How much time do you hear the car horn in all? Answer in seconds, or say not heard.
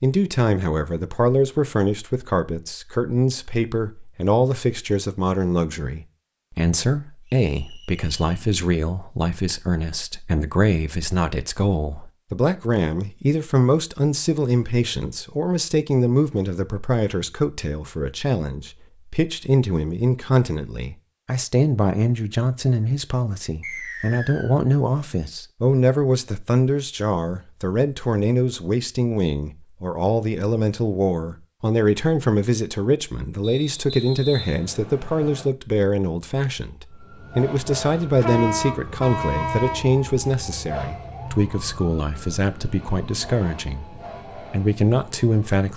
2 s.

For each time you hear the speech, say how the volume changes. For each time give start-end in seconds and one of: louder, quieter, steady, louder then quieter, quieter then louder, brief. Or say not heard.
0.0-45.7 steady.